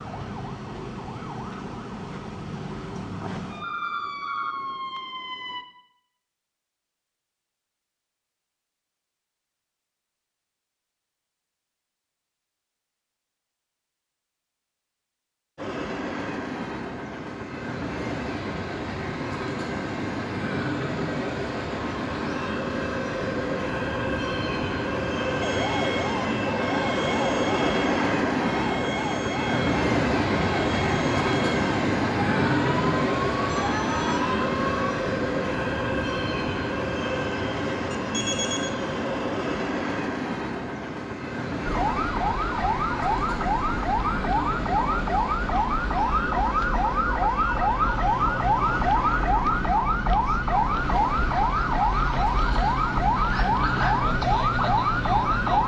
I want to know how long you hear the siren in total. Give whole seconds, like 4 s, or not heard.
29 s.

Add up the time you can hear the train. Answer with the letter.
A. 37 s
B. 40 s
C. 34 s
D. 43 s
B.